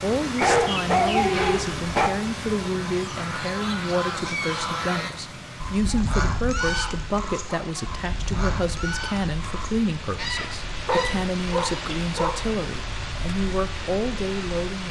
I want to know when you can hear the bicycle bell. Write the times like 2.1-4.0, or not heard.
not heard.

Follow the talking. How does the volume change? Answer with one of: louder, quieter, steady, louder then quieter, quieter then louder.
steady.